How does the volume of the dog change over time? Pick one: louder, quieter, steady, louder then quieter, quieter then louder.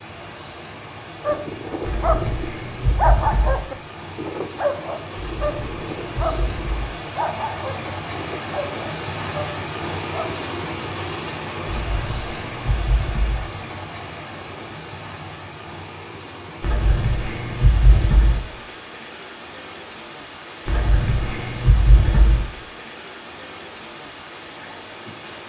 quieter.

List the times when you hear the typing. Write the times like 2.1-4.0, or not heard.
1.8-3.6, 5.3-6.9, 11.7-13.4, 16.6-18.4, 20.6-22.4.